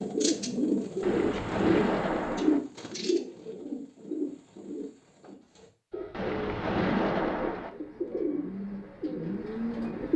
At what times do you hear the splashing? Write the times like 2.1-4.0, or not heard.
1.0-2.6, 6.1-7.7.